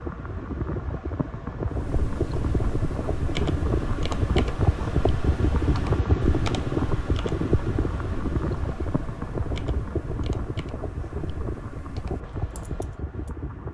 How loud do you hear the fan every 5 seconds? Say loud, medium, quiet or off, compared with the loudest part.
loud, loud, medium.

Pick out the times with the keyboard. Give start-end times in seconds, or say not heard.
1.6-13.3.